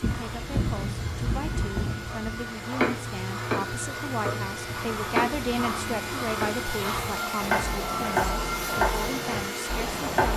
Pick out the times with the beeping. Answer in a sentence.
You can't hear the beeping here.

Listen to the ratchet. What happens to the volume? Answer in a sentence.
The volume of the ratchet stays about the same.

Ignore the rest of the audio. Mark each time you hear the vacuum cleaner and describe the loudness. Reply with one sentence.
You can hear the vacuum cleaner from 0.0 to 10.3 s, getting louder.